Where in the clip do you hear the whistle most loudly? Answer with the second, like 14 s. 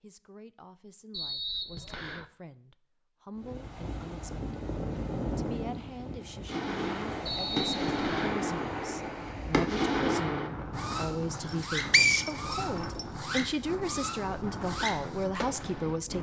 12 s.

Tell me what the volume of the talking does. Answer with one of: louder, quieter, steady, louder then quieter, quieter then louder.
louder.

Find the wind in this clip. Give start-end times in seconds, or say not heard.
3.4-16.1.